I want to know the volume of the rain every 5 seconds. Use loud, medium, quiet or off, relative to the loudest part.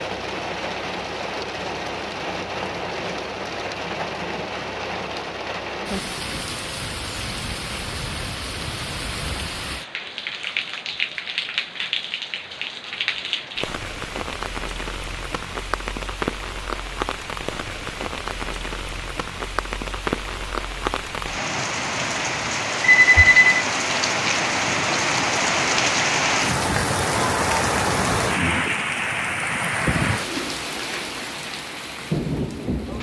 medium, medium, medium, medium, loud, loud, medium.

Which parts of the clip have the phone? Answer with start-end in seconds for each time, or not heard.
22.8-23.6.